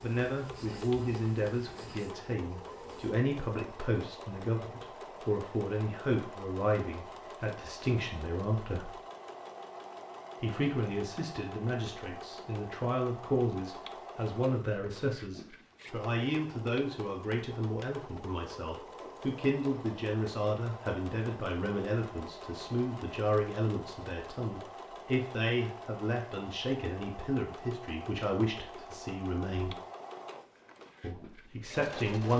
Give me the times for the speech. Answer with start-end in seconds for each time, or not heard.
0.0-8.9, 10.4-29.8, 31.0-32.3.